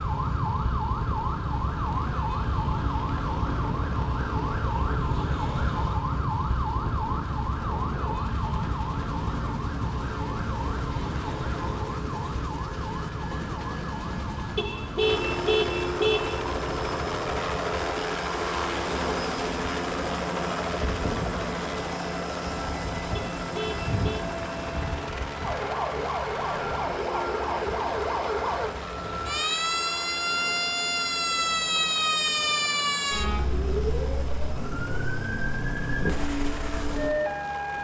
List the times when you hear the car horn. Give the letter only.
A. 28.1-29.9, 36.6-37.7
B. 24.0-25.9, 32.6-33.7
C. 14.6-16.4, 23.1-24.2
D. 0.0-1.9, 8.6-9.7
C.